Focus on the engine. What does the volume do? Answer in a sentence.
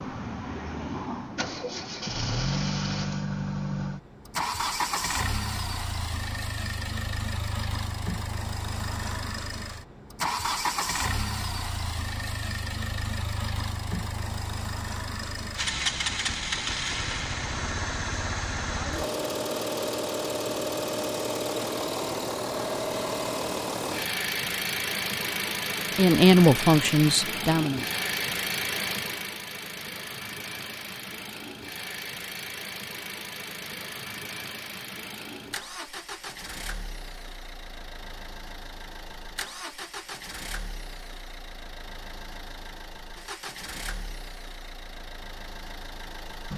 The loudness of the engine goes down.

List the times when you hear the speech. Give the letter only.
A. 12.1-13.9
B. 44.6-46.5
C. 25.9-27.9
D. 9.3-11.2
C.